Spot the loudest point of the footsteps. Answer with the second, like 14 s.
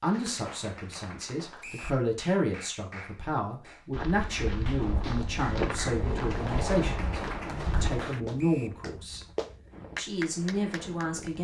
6 s.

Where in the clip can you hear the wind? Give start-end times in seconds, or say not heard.
4.8-11.3.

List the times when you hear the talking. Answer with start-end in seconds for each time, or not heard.
0.0-9.2, 9.9-11.3.